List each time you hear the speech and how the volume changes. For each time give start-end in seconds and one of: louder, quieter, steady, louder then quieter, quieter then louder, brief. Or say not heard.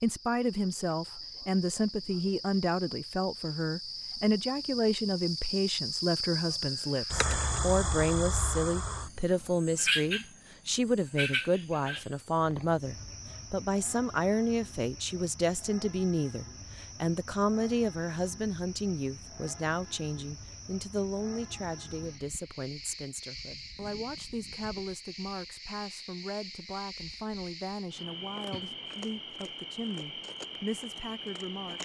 0.0-31.8 quieter.